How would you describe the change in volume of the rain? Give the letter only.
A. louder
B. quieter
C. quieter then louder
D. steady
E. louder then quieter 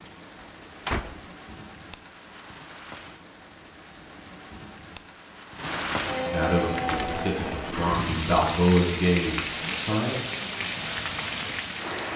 A.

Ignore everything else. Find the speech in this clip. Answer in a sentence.
You can hear the speech from 6.3 to 10.2 s.